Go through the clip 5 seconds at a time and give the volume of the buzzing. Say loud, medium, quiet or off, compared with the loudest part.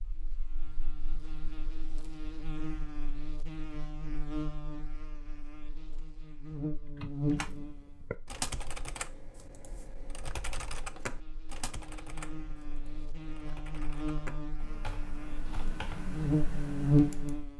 quiet, medium, quiet, loud.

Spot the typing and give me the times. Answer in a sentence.
You can hear the typing from 6.8 to 17.4 s.